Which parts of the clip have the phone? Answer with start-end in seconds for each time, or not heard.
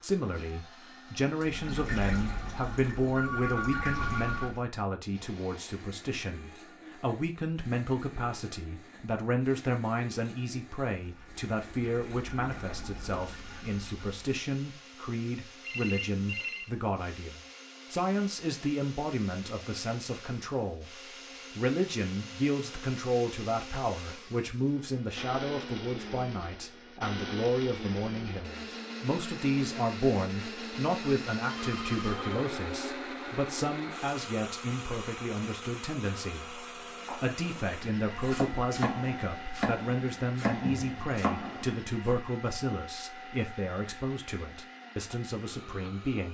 3.1-4.5, 15.6-16.7, 31.4-32.5.